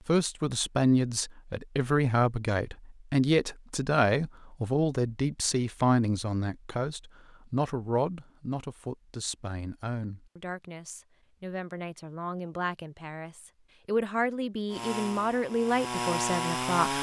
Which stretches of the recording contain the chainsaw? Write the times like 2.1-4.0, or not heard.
14.7-16.9.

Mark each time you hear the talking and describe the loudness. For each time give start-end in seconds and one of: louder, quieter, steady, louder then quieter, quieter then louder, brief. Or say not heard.
0.1-16.9 quieter then louder.